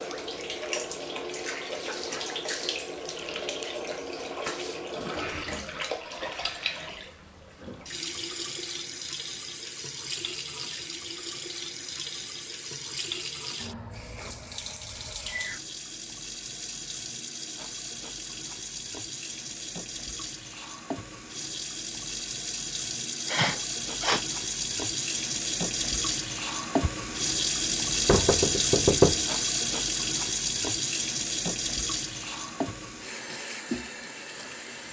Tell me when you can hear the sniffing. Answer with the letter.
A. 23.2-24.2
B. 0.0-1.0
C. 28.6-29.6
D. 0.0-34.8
A.